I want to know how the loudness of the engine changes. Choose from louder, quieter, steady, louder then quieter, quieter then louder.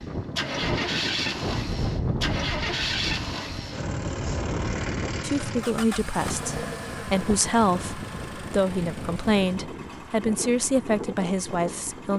quieter.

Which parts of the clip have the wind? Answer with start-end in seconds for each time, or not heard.
0.0-12.1.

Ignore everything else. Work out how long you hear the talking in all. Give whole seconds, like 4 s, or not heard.
7 s.